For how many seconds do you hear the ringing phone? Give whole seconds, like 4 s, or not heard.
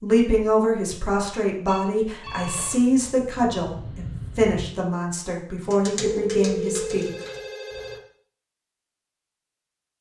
3 s.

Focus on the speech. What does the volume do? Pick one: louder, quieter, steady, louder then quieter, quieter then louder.
steady.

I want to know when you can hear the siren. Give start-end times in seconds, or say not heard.
not heard.